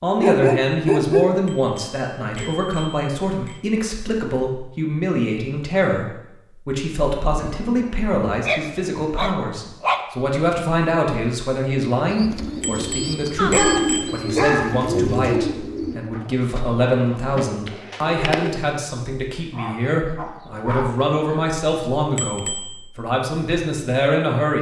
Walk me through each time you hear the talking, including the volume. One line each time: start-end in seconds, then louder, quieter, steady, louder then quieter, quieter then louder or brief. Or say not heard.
0.0-24.5 steady.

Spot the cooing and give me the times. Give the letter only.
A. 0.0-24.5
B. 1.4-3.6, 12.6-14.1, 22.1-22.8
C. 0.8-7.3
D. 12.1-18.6
D.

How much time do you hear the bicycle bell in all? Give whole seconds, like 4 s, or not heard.
4 s.